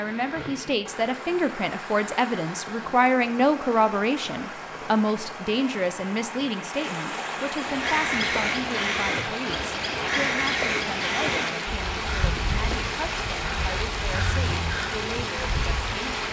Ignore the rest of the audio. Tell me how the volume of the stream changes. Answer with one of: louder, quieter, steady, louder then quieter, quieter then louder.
louder.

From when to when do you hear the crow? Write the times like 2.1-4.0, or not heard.
7.5-16.0.